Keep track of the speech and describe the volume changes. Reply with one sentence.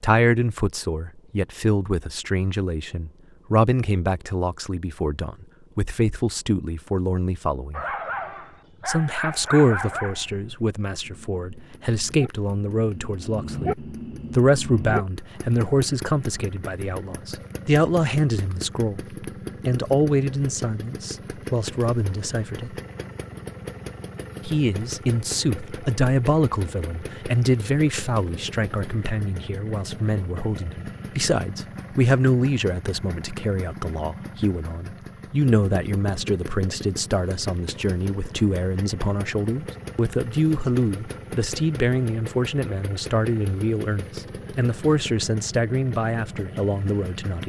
The volume of the speech stays about the same.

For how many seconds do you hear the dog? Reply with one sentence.
The dog can be heard for 7 seconds in total.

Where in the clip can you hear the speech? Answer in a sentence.
You can hear the speech from 0.0 to 7.8 s, from 8.8 to 22.8 s and from 24.4 to 47.4 s.